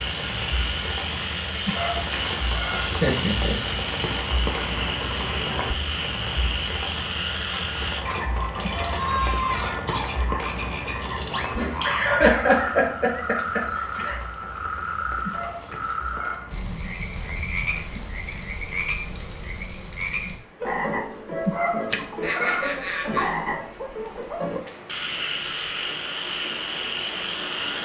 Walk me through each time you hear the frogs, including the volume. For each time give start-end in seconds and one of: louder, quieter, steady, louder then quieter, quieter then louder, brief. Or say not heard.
0.0-27.8 steady.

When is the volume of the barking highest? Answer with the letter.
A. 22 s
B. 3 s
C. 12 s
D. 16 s
A.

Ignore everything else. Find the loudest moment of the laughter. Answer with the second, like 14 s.
12 s.